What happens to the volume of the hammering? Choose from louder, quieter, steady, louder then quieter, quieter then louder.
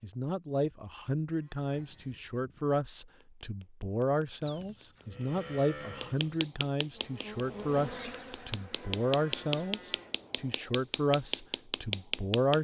louder.